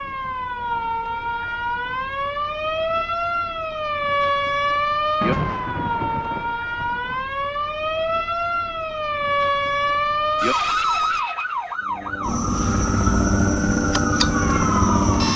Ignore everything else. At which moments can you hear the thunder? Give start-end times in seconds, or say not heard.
5.2-7.2.